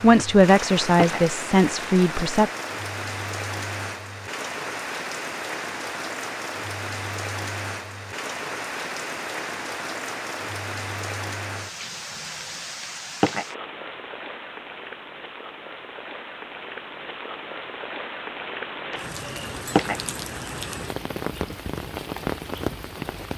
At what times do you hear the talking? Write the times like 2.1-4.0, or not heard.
0.0-2.5.